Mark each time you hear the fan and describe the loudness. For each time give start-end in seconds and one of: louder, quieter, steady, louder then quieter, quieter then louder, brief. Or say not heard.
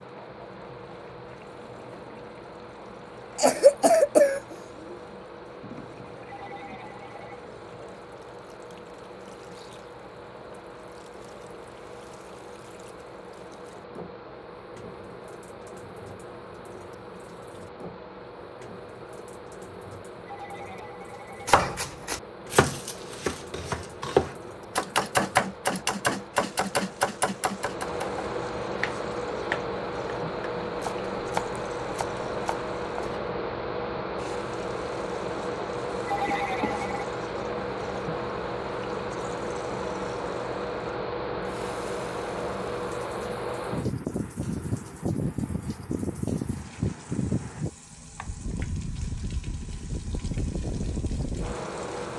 0.0-52.1 louder.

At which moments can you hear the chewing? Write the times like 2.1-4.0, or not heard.
not heard.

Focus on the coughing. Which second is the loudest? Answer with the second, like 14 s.
4 s.